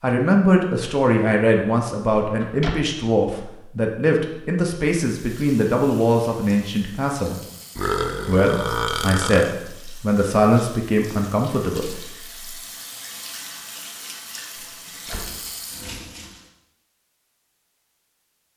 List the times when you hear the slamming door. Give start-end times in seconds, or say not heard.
2.2-2.8, 14.6-15.5.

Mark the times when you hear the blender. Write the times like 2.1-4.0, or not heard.
not heard.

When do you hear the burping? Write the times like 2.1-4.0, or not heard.
7.8-9.6.